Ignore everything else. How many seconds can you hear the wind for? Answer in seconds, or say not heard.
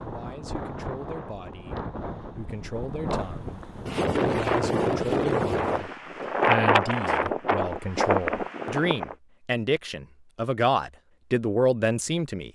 9 s.